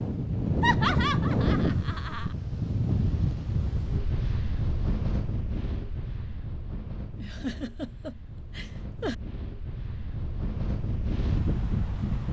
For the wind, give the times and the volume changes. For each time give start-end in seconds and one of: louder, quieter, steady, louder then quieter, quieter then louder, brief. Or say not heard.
0.0-12.2 quieter then louder.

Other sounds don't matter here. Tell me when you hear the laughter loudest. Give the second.
1 s.